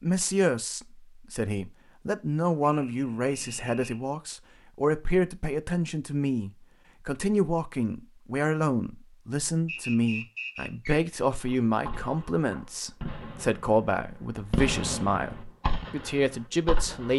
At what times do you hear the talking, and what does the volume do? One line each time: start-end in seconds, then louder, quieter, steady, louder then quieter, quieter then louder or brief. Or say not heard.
0.0-17.1 steady.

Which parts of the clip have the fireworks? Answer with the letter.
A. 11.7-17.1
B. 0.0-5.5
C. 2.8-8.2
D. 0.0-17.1
A.